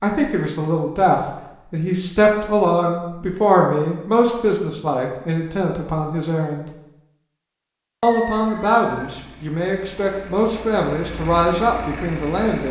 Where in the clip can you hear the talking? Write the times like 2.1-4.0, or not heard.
0.0-6.7, 8.0-12.6.